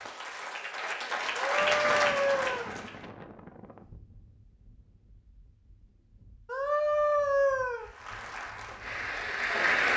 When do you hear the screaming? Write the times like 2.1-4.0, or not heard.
1.4-2.8, 6.5-7.8.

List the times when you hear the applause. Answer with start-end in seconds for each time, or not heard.
0.0-3.0, 7.8-9.9.